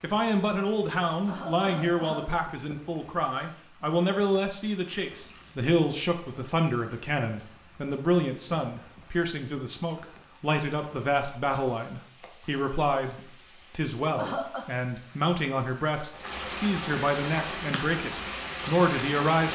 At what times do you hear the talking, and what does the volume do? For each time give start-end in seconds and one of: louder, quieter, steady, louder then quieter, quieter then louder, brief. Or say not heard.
0.0-19.5 steady.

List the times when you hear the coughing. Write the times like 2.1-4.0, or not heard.
1.1-2.5, 14.0-14.7.